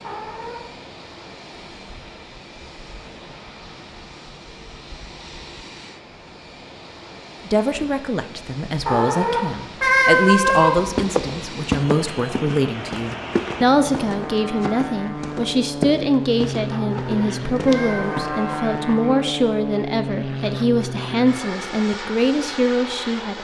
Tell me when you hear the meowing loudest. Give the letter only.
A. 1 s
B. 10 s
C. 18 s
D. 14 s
B.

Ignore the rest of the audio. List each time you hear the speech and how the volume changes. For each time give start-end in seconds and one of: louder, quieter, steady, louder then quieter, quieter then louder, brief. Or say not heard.
7.5-23.3 steady.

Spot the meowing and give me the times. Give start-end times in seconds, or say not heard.
0.0-0.6, 8.8-10.8, 16.7-18.6.